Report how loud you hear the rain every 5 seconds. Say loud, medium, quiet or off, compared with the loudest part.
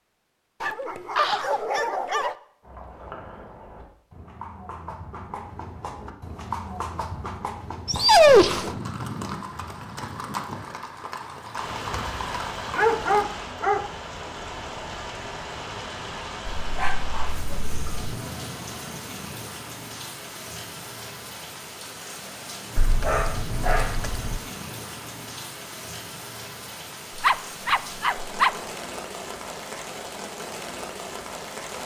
off, off, loud, loud, loud, loud, loud.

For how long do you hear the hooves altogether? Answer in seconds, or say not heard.
11 s.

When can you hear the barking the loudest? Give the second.
8 s.